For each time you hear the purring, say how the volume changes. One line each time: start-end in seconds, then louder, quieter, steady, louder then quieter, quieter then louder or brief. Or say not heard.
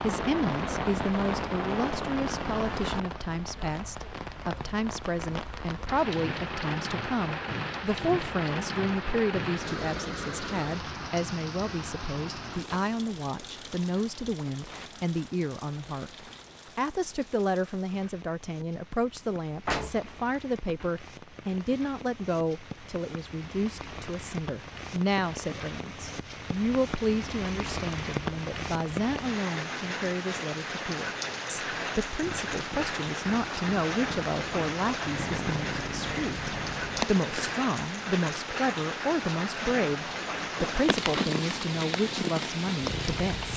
32.2-37.5 louder
40.5-43.5 brief.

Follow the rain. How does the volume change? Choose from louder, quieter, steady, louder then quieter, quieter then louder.
quieter then louder.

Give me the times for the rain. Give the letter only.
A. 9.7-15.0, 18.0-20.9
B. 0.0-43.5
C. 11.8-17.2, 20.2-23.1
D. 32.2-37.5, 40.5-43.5
B.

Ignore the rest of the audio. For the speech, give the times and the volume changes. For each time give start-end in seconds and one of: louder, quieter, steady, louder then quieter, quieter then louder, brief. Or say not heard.
0.0-43.5 steady.